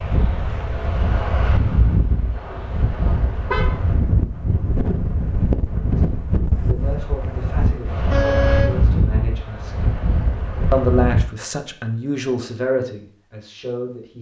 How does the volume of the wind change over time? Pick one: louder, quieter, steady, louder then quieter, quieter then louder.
steady.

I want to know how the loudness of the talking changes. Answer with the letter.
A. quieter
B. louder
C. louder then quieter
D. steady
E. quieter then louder
C.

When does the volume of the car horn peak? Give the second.
8 s.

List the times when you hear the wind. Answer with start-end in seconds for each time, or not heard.
0.0-11.2.